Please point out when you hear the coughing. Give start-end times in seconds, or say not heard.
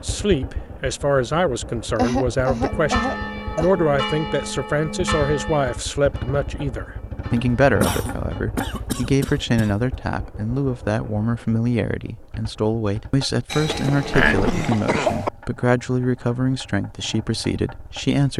1.9-3.7, 7.8-9.8, 13.5-15.3.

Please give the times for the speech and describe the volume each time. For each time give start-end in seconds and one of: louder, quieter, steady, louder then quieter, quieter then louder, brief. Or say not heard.
0.0-18.3 steady.